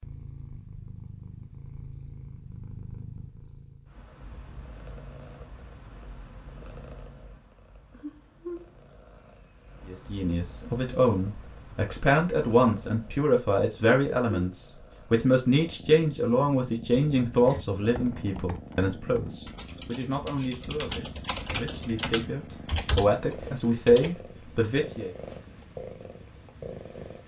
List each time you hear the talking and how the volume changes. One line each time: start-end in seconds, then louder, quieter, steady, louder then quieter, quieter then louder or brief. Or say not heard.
9.8-25.1 quieter then louder.